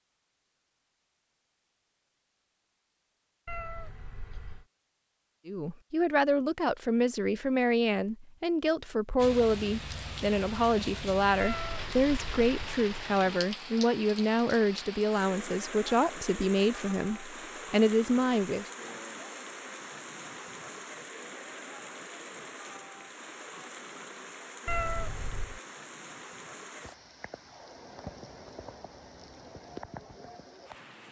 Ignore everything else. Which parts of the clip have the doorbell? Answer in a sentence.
You can't hear the doorbell here.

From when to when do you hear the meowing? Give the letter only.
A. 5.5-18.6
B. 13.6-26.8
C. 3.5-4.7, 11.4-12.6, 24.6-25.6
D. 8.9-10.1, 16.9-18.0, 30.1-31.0
C.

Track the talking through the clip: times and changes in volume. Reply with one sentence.
You can hear the talking from 5.5 to 18.6 s, at a steady volume.